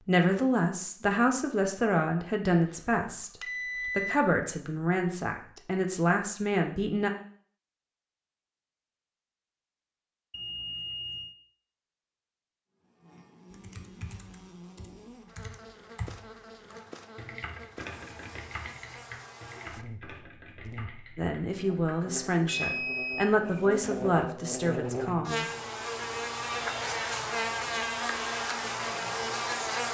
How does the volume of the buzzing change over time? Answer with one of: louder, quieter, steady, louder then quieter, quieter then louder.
louder.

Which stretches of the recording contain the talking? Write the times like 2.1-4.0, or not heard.
0.1-7.1, 21.1-25.4.